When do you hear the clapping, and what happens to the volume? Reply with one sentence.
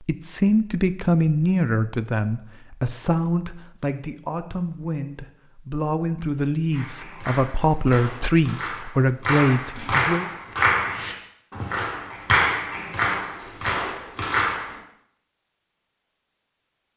The clapping can be heard from 6.7 to 14.8 s, getting louder.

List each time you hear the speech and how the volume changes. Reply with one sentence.
The speech can be heard from 0.0 to 10.2 s, getting quieter then louder.